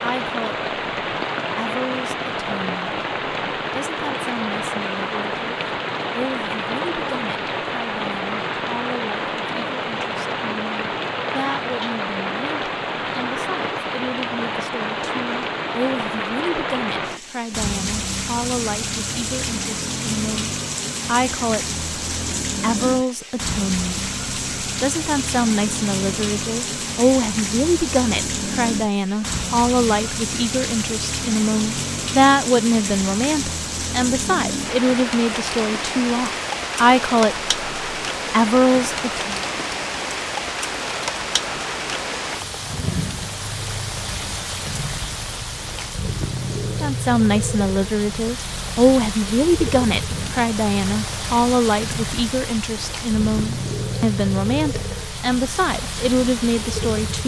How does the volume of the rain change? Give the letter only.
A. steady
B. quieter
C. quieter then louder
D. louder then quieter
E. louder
A.